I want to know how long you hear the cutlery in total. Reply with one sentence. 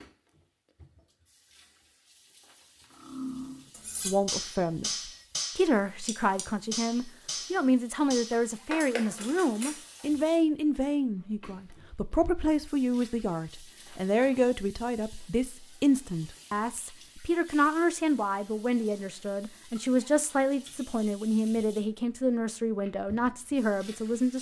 You can hear the cutlery for 7 seconds altogether.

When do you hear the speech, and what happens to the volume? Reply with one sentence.
The speech can be heard from 4.0 to 24.3 s, at a steady volume.